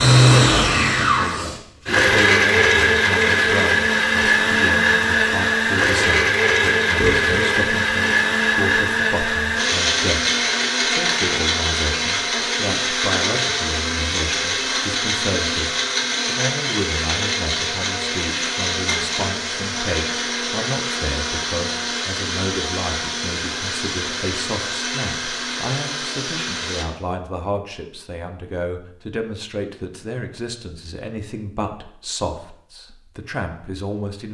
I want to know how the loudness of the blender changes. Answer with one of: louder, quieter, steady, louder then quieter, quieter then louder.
quieter.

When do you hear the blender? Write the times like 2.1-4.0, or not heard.
0.0-26.9.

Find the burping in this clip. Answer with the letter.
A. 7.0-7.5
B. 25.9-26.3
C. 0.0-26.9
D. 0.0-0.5
A.